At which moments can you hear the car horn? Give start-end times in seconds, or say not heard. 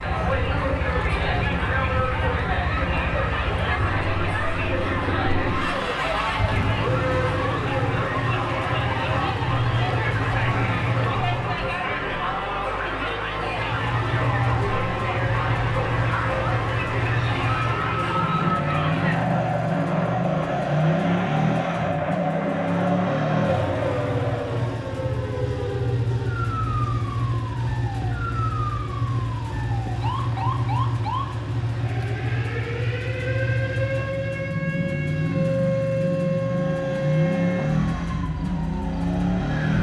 not heard.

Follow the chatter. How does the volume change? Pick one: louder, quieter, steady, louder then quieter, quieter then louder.
steady.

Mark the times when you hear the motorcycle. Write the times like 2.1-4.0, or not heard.
0.0-11.8, 13.5-39.7.